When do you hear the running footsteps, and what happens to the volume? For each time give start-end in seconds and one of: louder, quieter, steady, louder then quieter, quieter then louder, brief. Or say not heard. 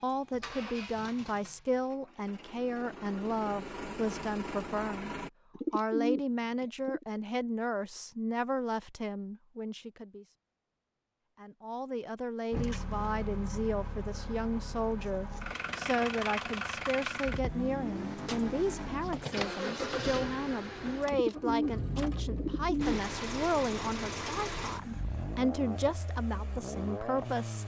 not heard.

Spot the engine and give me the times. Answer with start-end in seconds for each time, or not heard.
0.0-5.3, 12.5-27.6.